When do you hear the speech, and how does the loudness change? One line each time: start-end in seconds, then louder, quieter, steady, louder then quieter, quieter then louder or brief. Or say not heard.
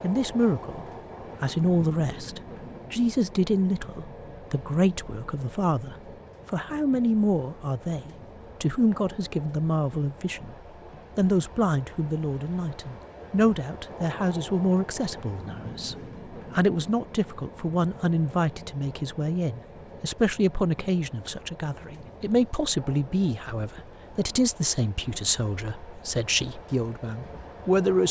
0.0-10.6 steady
11.2-28.0 steady.